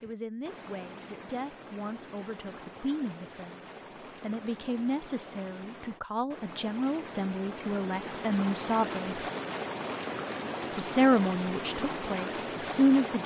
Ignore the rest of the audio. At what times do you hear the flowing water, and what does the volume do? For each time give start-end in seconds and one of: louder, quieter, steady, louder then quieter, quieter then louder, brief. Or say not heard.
0.0-13.2 louder.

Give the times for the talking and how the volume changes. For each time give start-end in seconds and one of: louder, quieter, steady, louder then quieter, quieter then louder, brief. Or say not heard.
0.0-9.2 louder
10.8-13.2 brief.